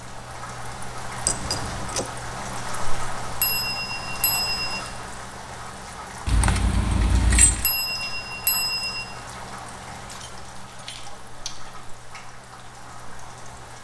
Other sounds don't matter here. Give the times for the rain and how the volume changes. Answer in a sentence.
You can hear the rain from 0.0 to 13.7 s, getting quieter.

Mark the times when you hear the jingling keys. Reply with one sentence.
You can hear the jingling keys from 1.2 to 2.0 s, from 6.2 to 7.7 s and from 9.9 to 11.7 s.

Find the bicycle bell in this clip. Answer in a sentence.
The bicycle bell can be heard from 3.4 to 4.8 s and from 7.6 to 9.1 s.